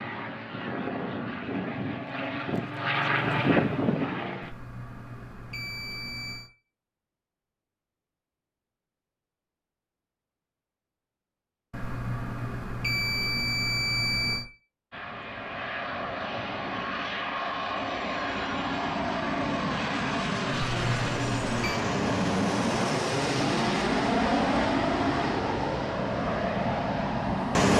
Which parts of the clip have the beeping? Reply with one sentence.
The beeping can be heard from 4.4 to 6.5 s, from 11.7 to 14.4 s and from 20.5 to 21.8 s.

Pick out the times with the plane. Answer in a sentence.
The plane can be heard from 0.0 to 4.5 s and from 14.9 to 27.7 s.